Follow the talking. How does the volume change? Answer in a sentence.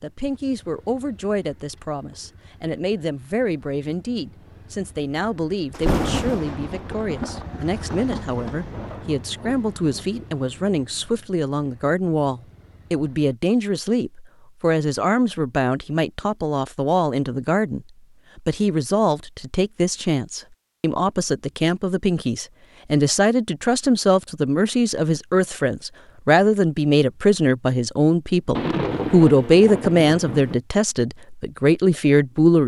The loudness of the talking goes up.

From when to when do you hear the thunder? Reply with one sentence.
You can hear the thunder from 5.7 to 10.0 s and from 28.5 to 30.6 s.